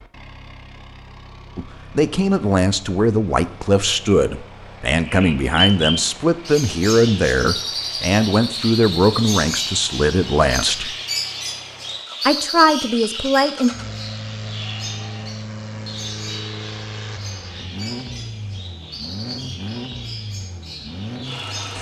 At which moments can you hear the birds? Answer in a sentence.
You can hear the birds from 5.0 to 21.7 s.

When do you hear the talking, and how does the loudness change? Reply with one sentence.
The talking can be heard from 1.6 to 10.9 s, at a steady volume; and briefly from 12.2 to 13.7 s.